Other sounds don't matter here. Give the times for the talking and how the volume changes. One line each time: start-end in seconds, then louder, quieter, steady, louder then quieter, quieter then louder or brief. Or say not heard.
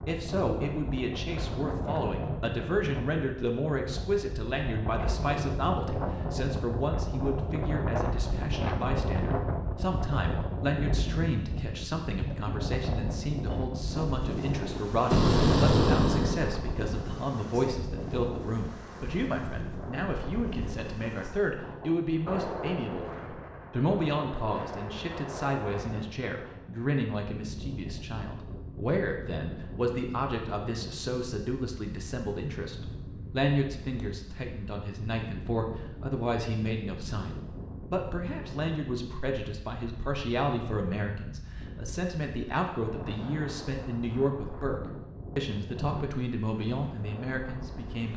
0.1-48.1 steady.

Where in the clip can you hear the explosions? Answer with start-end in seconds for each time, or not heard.
15.1-16.6.